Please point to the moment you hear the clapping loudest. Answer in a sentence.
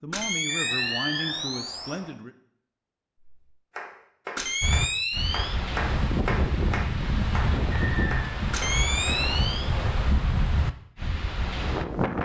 The volume of the clapping peaks at 6 seconds.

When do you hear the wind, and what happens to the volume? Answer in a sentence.
You can hear the wind from 4.6 to 12.1 s, at a steady volume.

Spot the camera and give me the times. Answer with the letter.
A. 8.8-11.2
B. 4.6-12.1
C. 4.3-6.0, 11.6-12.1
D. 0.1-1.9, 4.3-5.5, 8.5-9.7
D.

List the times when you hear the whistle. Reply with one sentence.
The whistle can be heard from 0.5 to 2.1 s and from 7.8 to 8.3 s.